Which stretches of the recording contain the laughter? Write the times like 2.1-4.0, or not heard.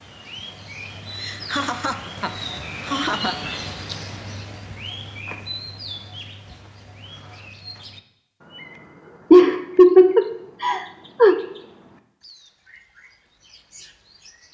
1.1-3.4, 9.3-11.3.